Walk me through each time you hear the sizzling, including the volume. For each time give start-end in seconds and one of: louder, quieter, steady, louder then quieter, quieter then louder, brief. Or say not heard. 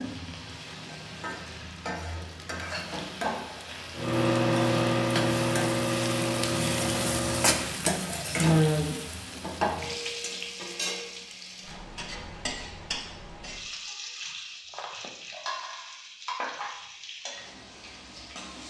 0.0-18.6 louder then quieter.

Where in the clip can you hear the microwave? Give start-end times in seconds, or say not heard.
4.0-7.7.